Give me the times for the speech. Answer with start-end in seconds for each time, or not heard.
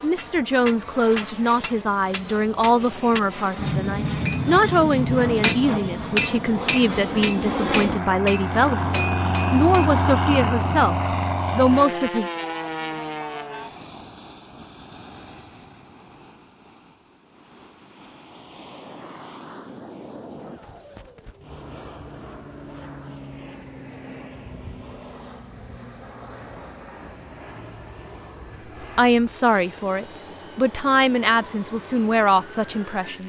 0.0-12.3, 28.9-33.2.